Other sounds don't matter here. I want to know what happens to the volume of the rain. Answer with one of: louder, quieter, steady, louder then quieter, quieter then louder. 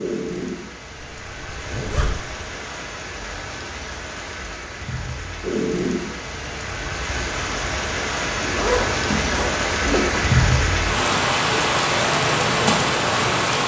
louder.